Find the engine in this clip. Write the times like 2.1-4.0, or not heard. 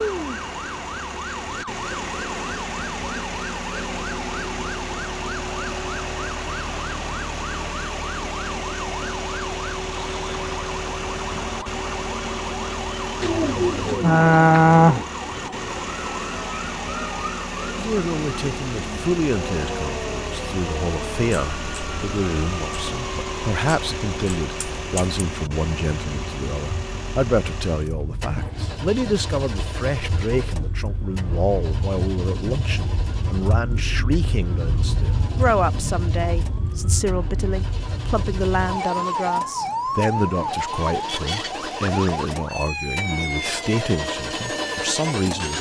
0.0-45.5.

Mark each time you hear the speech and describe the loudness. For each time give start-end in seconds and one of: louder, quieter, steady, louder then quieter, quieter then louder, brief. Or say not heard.
17.7-45.5 steady.